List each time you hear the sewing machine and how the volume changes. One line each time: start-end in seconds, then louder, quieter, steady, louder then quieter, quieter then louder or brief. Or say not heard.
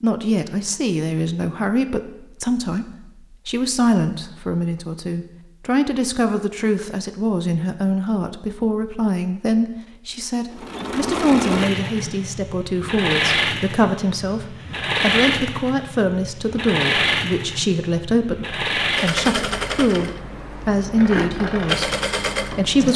10.5-22.9 steady.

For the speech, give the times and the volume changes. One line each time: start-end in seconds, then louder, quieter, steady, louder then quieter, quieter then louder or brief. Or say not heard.
0.0-22.9 steady.